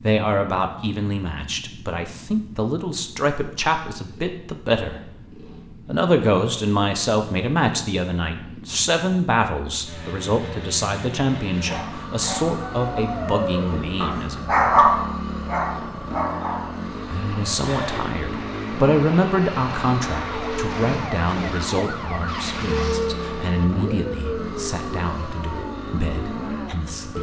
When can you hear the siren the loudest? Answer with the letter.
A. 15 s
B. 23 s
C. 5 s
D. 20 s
B.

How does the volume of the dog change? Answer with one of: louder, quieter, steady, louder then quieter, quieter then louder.
louder then quieter.